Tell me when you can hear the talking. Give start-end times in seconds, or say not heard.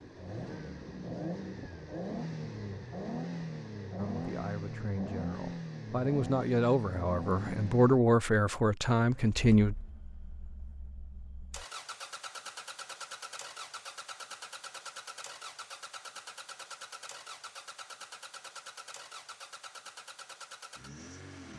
4.0-9.8.